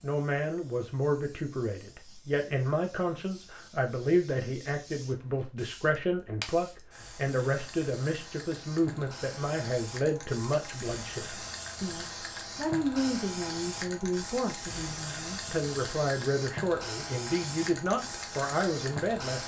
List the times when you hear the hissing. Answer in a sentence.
The hissing can be heard from 0.0 to 19.4 s.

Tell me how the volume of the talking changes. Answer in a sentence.
The volume of the talking stays about the same.